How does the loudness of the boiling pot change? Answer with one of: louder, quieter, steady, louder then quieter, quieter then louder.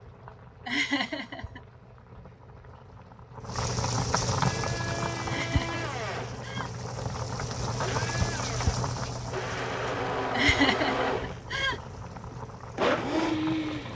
louder then quieter.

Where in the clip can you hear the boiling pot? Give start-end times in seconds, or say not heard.
0.0-13.9.